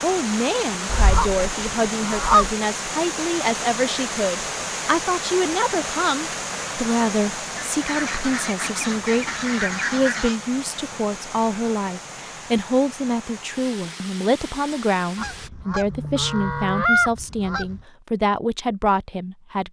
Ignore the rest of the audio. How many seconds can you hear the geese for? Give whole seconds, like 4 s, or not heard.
7 s.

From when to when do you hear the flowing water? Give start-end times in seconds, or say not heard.
0.0-15.5.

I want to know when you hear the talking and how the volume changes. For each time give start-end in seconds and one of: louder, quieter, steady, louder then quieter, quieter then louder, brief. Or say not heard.
0.0-19.6 steady.